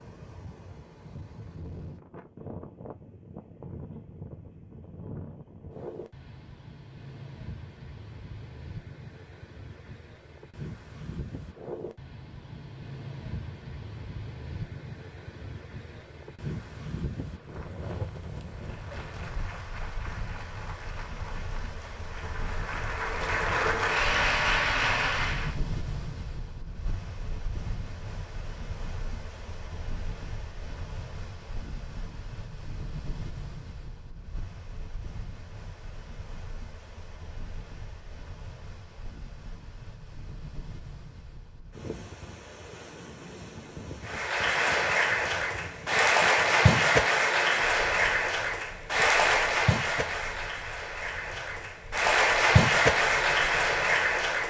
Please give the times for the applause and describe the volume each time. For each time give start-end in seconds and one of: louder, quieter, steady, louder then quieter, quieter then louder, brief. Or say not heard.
18.6-25.6 louder
44.0-54.4 quieter then louder.